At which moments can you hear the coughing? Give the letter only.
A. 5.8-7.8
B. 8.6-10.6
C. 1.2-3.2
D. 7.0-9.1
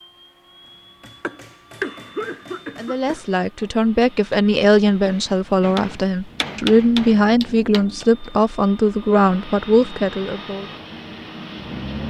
C.